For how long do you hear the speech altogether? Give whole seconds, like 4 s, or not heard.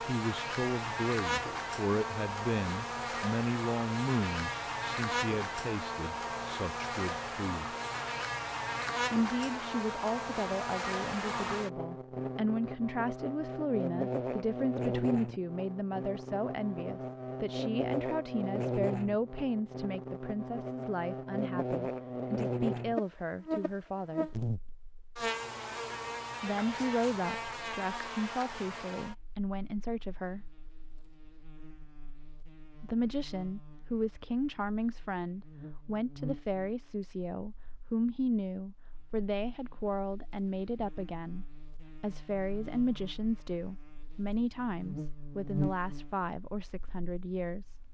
42 s.